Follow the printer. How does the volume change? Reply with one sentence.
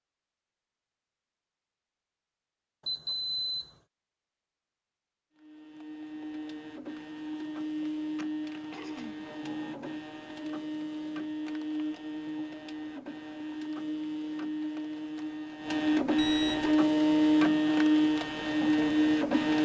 The volume of the printer goes up.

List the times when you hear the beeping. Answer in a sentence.
The beeping can be heard from 2.9 to 3.8 s and from 16.1 to 16.8 s.